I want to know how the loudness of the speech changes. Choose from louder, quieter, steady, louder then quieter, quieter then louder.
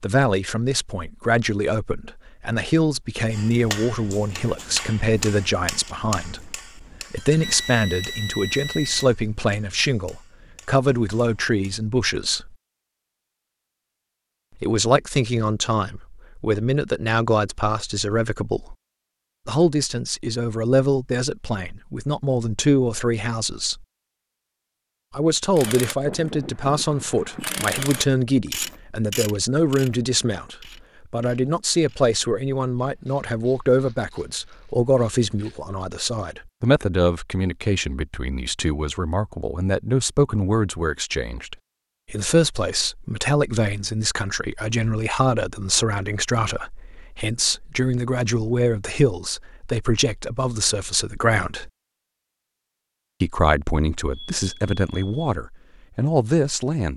steady.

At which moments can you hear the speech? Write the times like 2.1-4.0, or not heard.
0.0-12.6, 14.6-18.8, 19.4-23.9, 25.1-51.7, 53.2-56.9.